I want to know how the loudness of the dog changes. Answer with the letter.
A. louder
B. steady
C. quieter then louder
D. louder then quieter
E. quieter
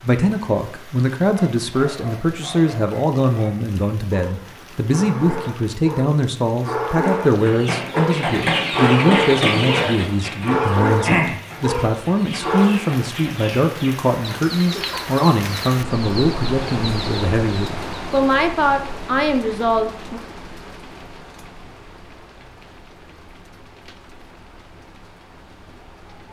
A.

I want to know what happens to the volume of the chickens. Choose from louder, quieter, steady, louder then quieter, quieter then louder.
quieter.